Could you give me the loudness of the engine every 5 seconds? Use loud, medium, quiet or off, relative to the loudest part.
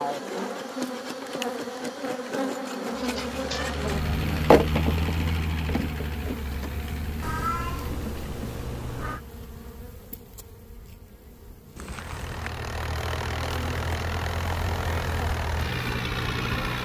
loud, medium, loud, loud.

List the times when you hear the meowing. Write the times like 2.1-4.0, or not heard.
3.0-3.8, 7.2-9.2, 11.8-12.5.